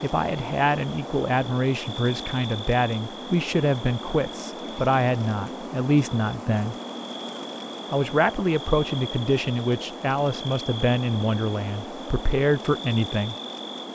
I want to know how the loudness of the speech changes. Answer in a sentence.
The loudness of the speech stays about the same.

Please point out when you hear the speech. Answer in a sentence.
You can hear the speech from 0.0 to 6.8 s and from 7.9 to 13.3 s.